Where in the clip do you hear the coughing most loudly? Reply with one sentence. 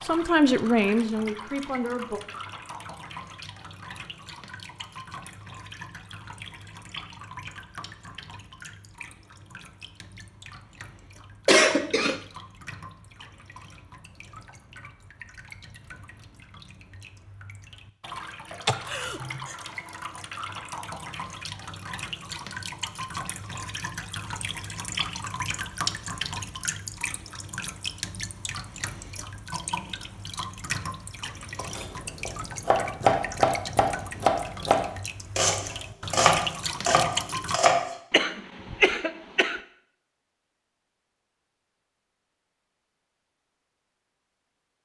The loudest moment of the coughing is at 12 seconds.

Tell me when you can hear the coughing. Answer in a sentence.
The coughing can be heard from 11.4 to 12.2 s, from 18.6 to 19.6 s and from 38.1 to 39.6 s.